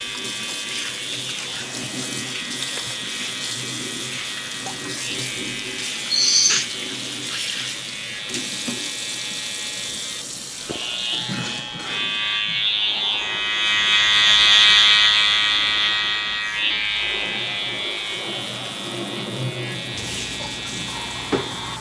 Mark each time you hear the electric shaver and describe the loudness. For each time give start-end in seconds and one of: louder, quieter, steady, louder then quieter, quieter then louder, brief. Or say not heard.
0.0-21.7 louder then quieter.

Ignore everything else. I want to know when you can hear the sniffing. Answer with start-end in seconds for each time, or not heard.
6.1-6.7.